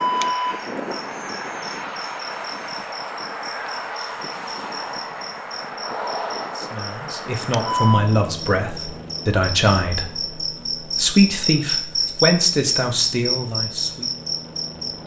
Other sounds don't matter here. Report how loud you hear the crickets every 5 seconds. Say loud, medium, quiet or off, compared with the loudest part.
medium, medium, loud.